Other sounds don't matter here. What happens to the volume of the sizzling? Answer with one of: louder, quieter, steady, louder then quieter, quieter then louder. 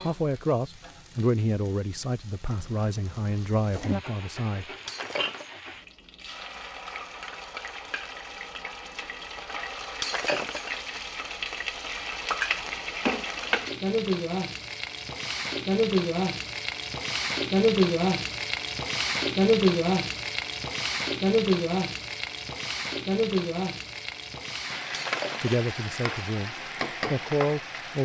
louder then quieter.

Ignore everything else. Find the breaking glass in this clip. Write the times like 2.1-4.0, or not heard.
4.8-5.5, 10.0-10.7, 24.9-25.6.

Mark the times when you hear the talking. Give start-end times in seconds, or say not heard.
0.0-4.7, 25.4-28.0.